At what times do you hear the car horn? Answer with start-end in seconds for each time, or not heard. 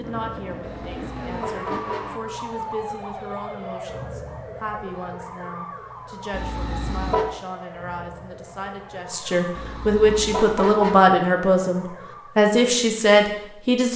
0.6-2.1, 6.3-7.3, 9.6-11.1.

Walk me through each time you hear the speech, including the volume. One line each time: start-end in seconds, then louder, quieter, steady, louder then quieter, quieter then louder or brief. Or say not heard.
0.0-13.9 louder.